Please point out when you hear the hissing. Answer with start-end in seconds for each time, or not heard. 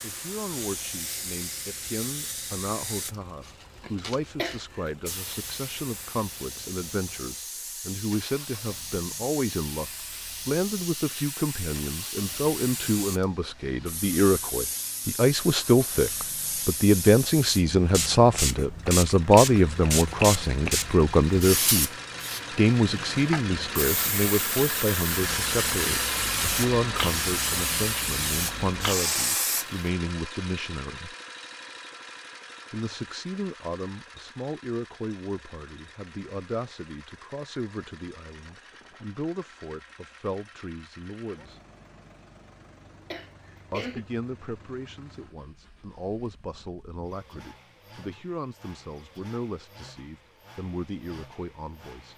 0.0-29.9.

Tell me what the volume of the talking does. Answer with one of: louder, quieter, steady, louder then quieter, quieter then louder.
louder then quieter.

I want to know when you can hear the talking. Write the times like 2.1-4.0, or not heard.
0.0-21.9, 22.6-31.1, 32.7-41.6, 43.7-52.1.